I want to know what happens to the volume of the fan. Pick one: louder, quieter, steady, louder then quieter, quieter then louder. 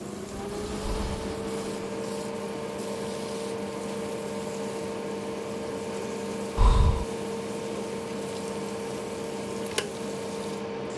steady.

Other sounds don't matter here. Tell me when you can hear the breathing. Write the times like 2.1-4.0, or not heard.
0.8-1.3, 6.5-7.0.